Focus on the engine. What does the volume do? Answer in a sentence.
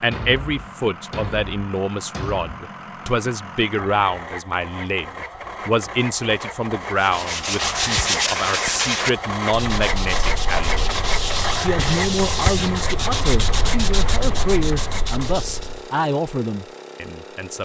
The loudness of the engine goes up, then down.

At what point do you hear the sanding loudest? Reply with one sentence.
The volume of the sanding peaks at 8 seconds.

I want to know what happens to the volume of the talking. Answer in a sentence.
The loudness of the talking stays about the same.